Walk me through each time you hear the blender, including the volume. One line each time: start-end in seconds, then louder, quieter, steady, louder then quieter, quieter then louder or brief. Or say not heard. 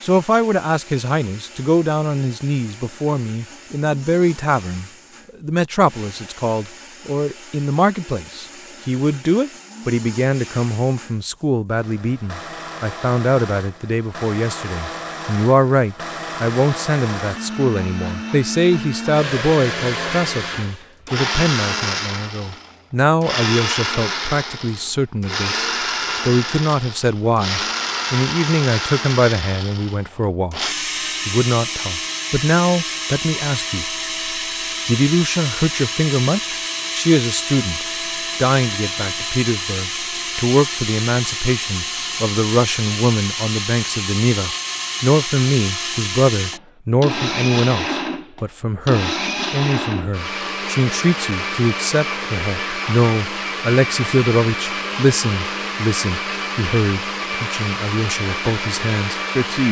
0.0-59.6 louder.